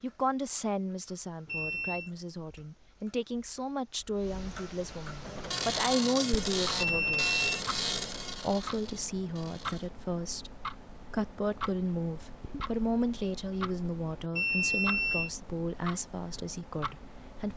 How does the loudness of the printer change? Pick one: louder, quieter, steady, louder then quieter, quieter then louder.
quieter.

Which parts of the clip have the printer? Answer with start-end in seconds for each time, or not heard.
5.2-9.8.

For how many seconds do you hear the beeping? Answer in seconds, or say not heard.
2 s.